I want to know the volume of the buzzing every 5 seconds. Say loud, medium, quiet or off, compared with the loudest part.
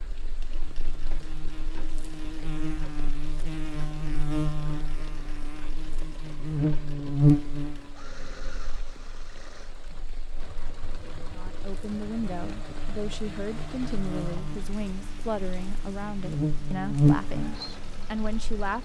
medium, loud, quiet, loud.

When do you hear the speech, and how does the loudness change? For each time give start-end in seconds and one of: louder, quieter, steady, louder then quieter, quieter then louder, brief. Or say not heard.
11.3-18.7 steady.